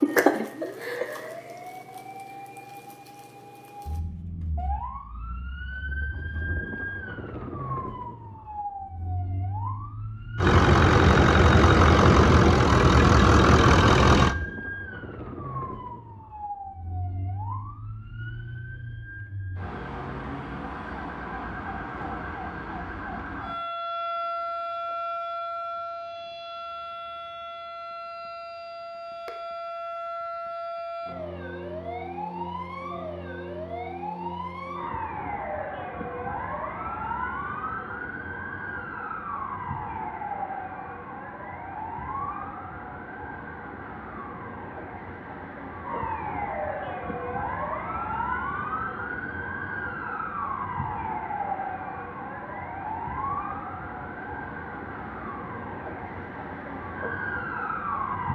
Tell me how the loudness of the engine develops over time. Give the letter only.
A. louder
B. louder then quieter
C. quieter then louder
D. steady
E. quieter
D.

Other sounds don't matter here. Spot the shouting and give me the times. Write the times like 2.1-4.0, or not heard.
not heard.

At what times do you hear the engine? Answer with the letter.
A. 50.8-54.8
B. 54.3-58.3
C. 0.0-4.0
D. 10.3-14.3
D.